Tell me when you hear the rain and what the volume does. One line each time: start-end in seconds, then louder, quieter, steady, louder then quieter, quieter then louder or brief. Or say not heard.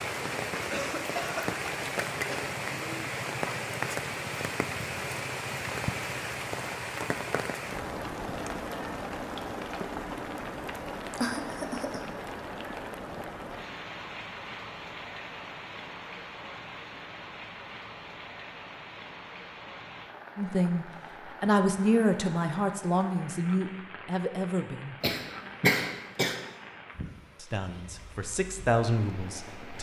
0.0-29.7 quieter.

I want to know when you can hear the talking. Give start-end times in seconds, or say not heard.
20.4-24.9, 27.4-29.7.